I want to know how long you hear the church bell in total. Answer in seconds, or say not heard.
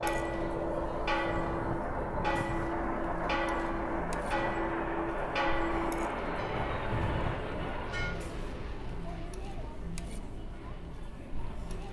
8 s.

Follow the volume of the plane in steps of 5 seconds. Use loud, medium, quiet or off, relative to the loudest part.
loud, loud, quiet.